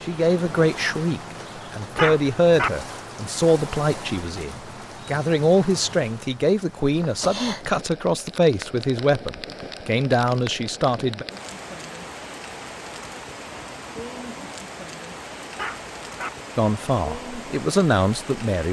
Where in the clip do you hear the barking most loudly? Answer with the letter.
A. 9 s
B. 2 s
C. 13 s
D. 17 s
B.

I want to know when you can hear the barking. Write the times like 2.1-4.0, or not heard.
1.9-2.7, 15.6-16.3.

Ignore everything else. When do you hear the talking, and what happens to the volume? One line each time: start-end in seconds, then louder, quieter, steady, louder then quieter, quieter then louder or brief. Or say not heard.
0.0-11.2 steady
16.6-18.6 brief.